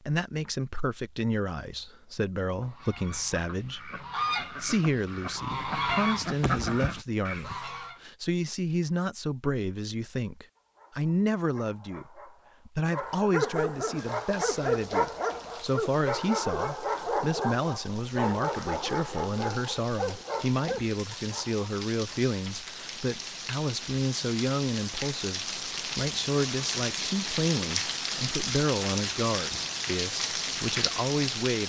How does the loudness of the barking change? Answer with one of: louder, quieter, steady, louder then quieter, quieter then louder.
louder then quieter.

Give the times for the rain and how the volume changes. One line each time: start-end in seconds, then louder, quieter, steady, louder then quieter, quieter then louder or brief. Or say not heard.
13.9-31.6 louder.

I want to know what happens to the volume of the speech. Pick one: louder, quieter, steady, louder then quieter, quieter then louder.
steady.